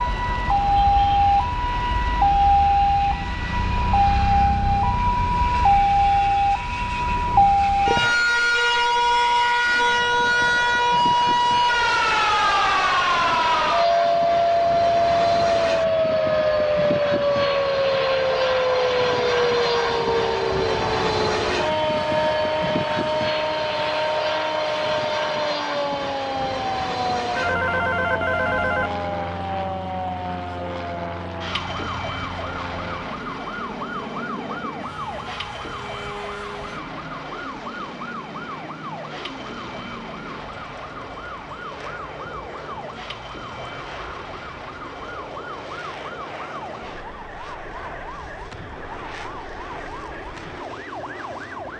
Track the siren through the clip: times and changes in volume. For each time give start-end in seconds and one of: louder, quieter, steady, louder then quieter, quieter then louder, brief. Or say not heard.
0.0-51.7 quieter.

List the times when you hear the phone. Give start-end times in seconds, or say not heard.
27.4-28.9.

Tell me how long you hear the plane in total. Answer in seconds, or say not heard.
52 s.